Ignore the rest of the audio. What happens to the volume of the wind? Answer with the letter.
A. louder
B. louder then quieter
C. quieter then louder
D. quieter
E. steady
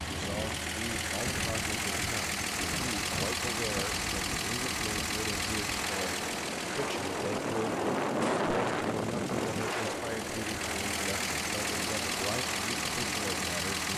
B.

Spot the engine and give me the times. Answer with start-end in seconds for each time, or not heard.
0.0-13.9.